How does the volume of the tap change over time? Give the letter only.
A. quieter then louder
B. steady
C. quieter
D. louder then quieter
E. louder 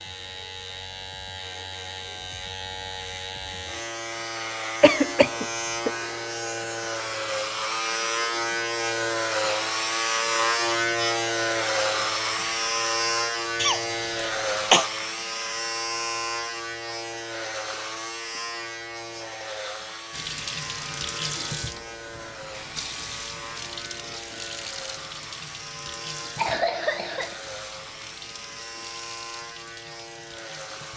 C.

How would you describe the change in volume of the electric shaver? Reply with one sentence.
The loudness of the electric shaver goes up, then down.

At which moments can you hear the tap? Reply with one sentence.
You can hear the tap from 20.1 to 30.9 s.